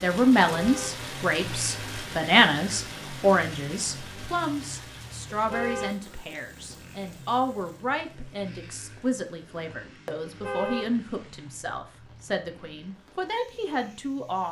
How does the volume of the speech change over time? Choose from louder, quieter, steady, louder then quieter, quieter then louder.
quieter.